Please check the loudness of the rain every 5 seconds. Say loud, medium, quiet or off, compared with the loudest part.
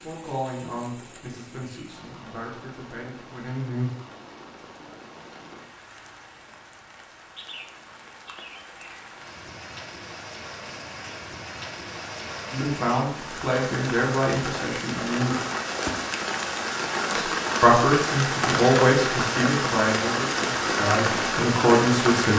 quiet, quiet, medium, loud, loud.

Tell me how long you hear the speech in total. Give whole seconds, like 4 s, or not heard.
12 s.